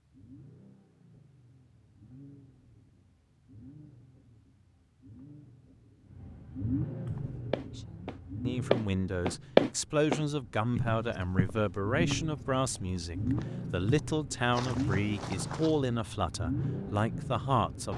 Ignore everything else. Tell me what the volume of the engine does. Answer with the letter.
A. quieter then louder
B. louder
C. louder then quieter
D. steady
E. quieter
B.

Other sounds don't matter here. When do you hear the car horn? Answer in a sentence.
You can't hear the car horn here.